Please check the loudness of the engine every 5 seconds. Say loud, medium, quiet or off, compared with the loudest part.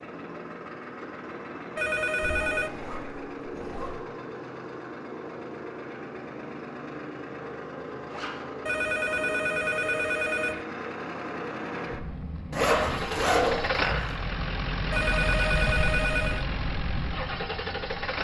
medium, medium, loud, loud.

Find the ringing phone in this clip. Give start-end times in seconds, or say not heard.
1.8-2.7, 8.7-10.7, 14.9-16.4.